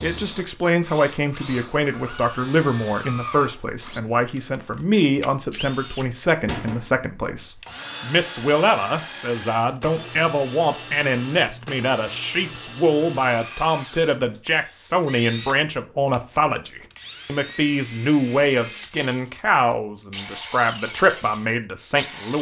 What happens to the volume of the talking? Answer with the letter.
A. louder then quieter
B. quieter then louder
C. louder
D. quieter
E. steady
E.